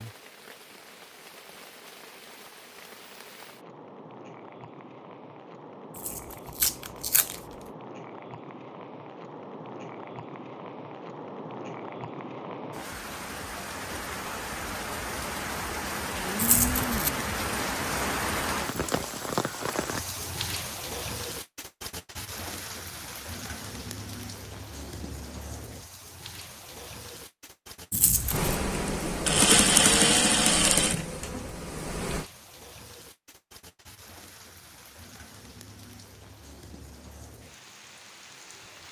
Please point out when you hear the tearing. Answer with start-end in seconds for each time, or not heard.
6.0-7.4, 16.4-17.1, 27.9-28.6.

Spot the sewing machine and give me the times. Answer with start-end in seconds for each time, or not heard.
28.3-32.2.